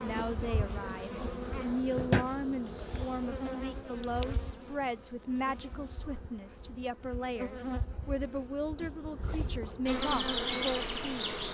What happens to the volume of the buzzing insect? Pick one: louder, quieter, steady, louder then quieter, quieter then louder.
quieter then louder.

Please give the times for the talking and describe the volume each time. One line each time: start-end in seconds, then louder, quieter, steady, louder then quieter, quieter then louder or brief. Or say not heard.
0.0-11.3 steady.